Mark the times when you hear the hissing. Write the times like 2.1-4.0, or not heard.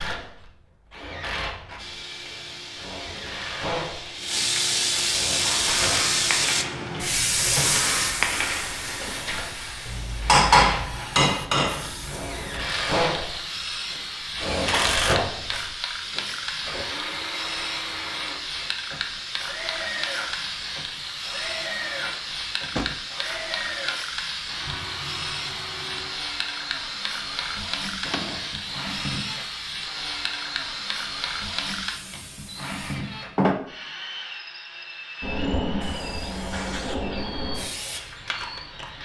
1.8-33.5, 35.2-39.0.